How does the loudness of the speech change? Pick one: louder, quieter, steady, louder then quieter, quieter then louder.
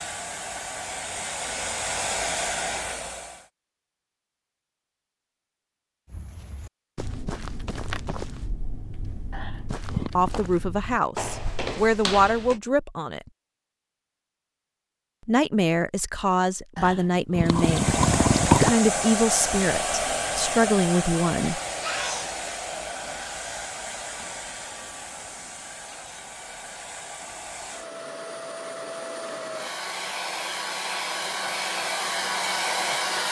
steady.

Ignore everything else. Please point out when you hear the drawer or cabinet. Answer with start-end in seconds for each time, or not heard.
not heard.